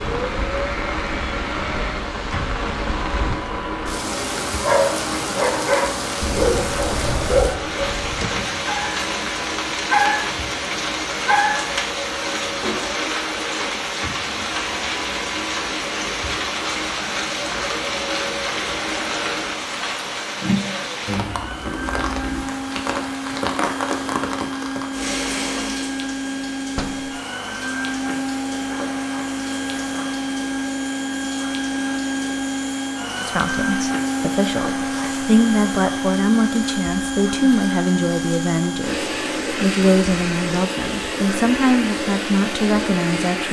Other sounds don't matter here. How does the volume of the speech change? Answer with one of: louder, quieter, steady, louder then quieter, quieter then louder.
steady.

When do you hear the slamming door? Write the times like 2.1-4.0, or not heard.
8.0-8.6, 26.8-27.2.